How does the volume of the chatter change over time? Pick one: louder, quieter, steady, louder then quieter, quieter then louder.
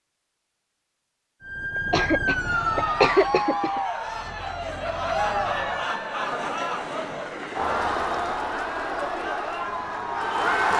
steady.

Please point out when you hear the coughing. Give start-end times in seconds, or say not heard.
1.8-3.8.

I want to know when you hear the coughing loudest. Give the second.
3 s.